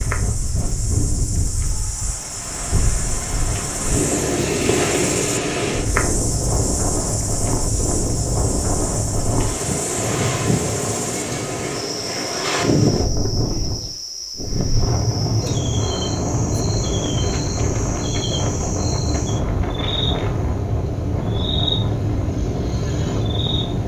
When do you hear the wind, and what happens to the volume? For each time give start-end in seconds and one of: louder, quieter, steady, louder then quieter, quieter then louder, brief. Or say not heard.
0.0-23.8 steady.